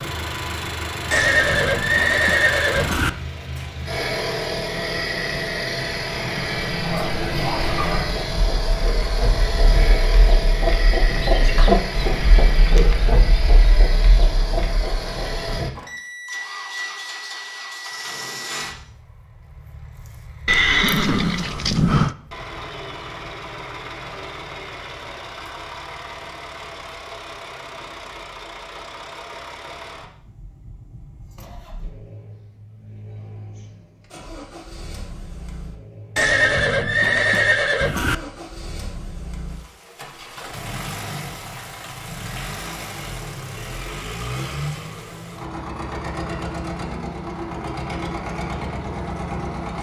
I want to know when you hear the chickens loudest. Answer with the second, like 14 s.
12 s.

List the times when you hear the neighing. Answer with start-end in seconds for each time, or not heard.
1.1-3.1, 20.4-22.1, 36.1-38.1.